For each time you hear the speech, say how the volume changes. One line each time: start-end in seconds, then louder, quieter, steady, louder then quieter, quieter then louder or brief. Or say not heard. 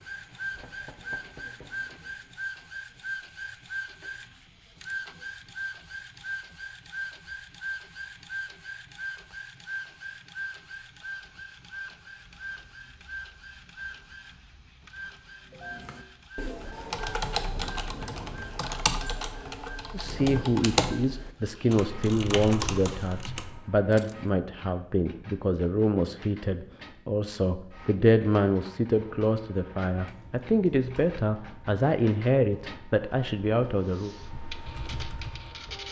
19.9-34.1 steady.